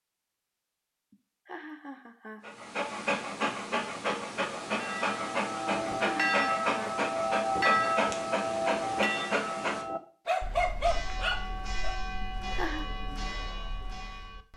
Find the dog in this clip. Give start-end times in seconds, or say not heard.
2.4-11.9.